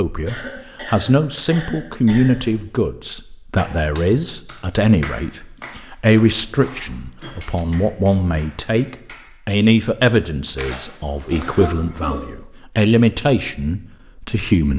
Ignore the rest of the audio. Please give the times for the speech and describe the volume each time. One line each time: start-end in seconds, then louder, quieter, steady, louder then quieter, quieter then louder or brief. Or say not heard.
0.0-14.7 steady.